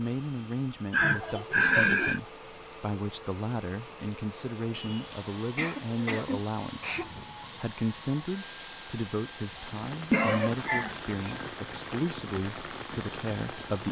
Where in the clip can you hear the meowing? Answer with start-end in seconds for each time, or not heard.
not heard.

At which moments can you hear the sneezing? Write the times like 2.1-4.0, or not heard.
0.9-2.2, 4.7-7.3, 10.1-11.4.